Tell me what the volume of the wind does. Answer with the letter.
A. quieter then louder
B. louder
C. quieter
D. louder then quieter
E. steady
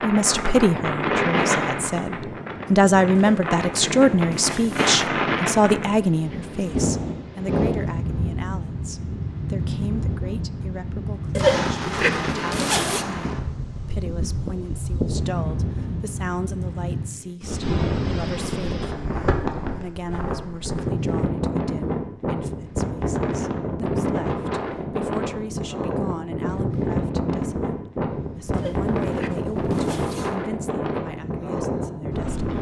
E.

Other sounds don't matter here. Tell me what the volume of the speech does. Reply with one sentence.
The volume of the speech goes down.